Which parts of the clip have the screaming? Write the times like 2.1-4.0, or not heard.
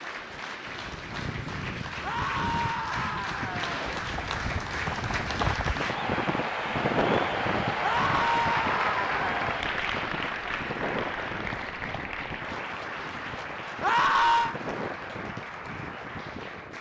2.0-3.7, 7.8-9.6, 13.8-14.6.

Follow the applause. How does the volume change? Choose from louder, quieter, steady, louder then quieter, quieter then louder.
louder then quieter.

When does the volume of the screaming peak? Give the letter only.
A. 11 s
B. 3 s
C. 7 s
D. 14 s
D.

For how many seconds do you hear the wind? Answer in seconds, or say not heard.
17 s.